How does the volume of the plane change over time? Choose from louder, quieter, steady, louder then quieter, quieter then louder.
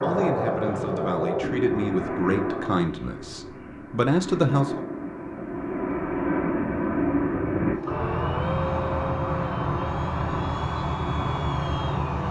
quieter then louder.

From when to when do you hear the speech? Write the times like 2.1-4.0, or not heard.
0.0-4.8.